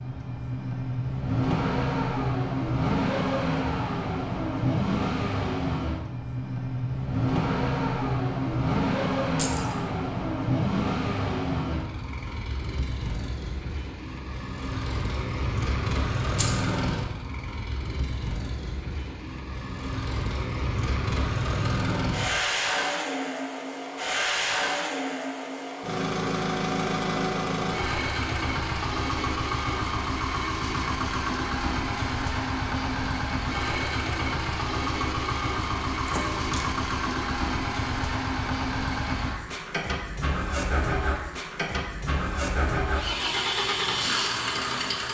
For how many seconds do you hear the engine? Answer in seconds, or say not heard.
45 s.